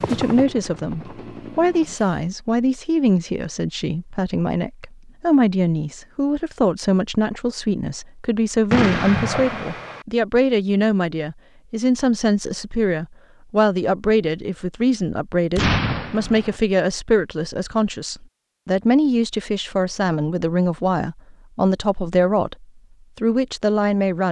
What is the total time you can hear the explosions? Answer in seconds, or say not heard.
2 s.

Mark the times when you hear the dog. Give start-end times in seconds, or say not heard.
not heard.